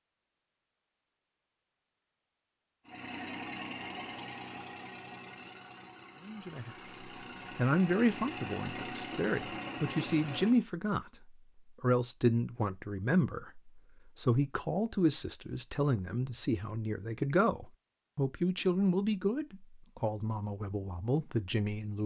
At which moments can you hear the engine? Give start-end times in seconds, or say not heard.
2.9-10.7.